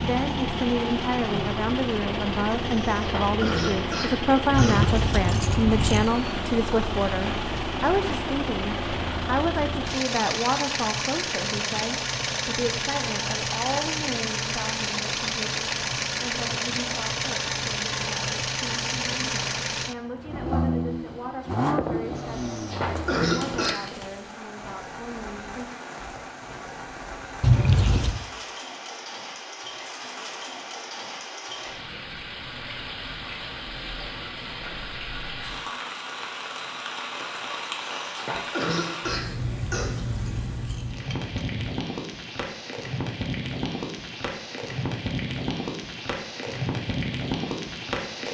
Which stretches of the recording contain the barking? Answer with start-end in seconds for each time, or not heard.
not heard.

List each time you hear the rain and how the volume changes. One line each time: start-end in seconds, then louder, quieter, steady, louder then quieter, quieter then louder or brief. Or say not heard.
22.4-48.2 louder.